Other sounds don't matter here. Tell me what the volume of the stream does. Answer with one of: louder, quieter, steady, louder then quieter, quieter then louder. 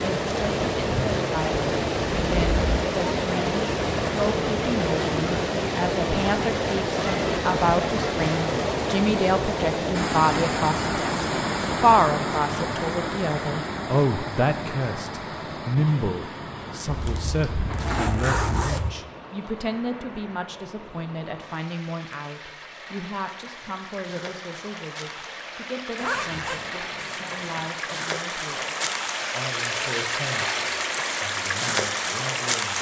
quieter then louder.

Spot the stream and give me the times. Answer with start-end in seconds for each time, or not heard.
0.0-32.7.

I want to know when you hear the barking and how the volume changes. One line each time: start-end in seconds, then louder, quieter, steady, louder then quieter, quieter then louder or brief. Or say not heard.
not heard.